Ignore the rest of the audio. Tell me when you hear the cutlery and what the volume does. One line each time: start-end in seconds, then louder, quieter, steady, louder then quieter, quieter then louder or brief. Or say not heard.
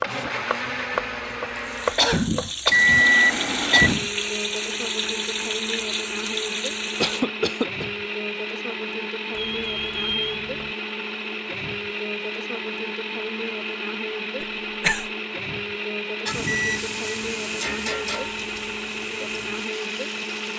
not heard.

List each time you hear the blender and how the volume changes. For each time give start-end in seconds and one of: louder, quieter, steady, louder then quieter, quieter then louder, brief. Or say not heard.
0.0-20.5 steady.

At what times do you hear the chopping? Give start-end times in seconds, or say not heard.
0.0-2.9.